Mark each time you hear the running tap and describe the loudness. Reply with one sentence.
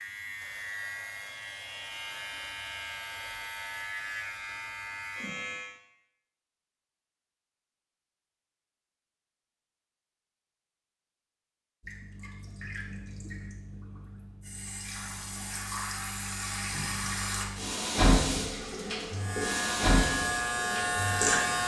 The running tap can be heard from 11.8 to 21.6 s, getting louder.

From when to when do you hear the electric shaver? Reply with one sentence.
You can hear the electric shaver from 0.0 to 5.8 s and from 19.1 to 21.6 s.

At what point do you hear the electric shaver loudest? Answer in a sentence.
The volume of the electric shaver peaks at 21 seconds.